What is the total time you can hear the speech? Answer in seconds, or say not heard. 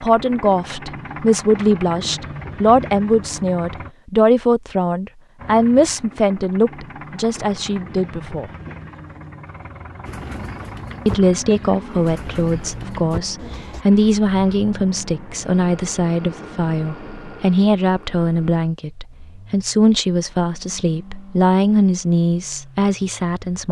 21 s.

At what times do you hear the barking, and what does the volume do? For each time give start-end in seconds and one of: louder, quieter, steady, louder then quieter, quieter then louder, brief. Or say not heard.
not heard.